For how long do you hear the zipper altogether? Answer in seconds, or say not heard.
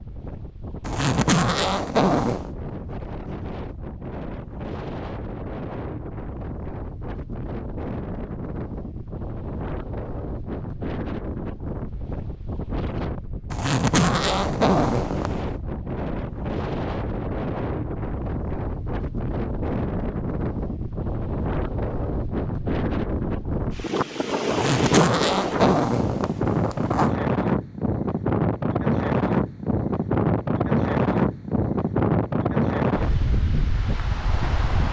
6 s.